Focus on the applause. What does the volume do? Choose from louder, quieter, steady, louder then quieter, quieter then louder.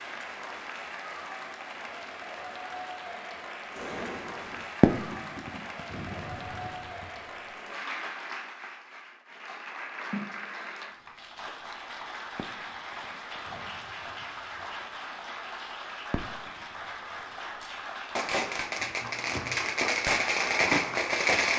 steady.